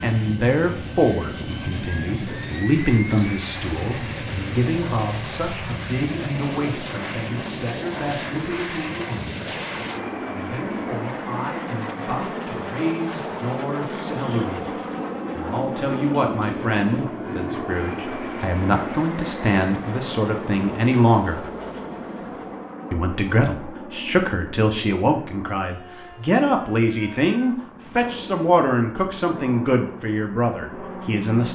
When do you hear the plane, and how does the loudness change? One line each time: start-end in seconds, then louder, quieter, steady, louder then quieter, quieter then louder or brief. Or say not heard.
0.0-31.5 quieter.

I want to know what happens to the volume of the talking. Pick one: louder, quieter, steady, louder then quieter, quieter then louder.
quieter then louder.